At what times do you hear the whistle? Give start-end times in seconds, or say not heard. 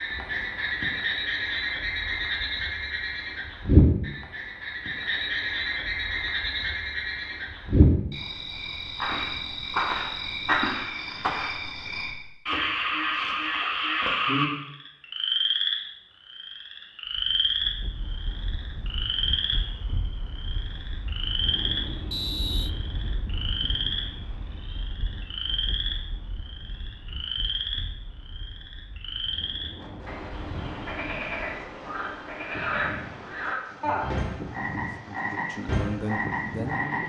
22.1-22.7.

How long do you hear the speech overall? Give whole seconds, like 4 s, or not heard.
2 s.